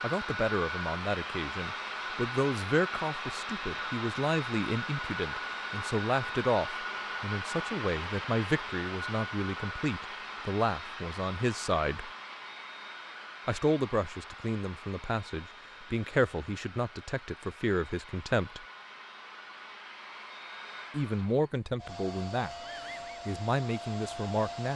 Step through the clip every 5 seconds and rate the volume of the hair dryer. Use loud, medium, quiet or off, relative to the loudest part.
loud, loud, medium, quiet, medium.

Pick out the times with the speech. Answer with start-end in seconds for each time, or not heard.
0.0-12.1, 13.4-18.6, 20.9-24.7.